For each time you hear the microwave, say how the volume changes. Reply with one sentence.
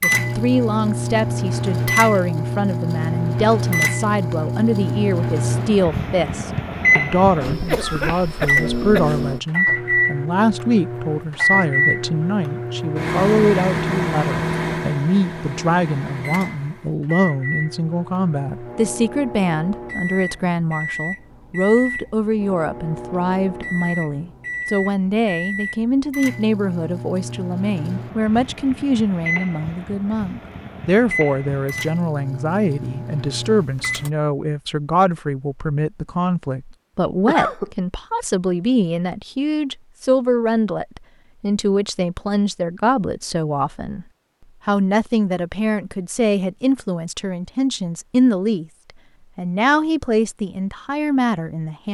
You can hear the microwave from 0.0 to 34.1 s, getting quieter.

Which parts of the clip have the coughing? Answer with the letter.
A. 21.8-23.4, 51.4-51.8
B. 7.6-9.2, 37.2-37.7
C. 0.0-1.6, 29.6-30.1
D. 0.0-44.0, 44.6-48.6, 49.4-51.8
B.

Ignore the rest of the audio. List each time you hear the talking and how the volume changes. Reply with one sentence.
You can hear the talking from 0.0 to 44.0 s, at a steady volume; from 44.6 to 48.6 s, getting quieter then louder; and briefly from 49.4 to 51.8 s.